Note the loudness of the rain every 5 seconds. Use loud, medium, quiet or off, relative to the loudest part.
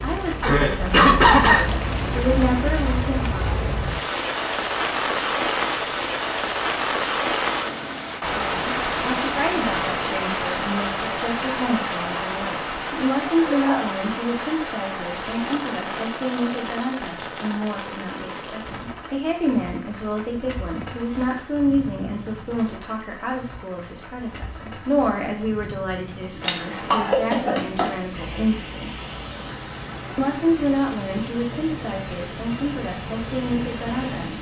loud, loud, loud, medium, quiet, quiet, medium.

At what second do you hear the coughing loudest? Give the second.
1 s.